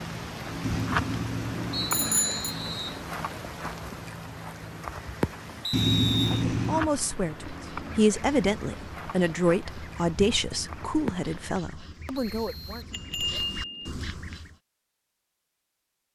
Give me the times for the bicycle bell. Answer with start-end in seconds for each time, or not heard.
0.6-2.4, 5.7-6.9, 12.9-13.9.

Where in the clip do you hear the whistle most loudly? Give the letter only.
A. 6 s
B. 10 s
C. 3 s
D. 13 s
A.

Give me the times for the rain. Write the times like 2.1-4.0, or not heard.
0.0-11.6.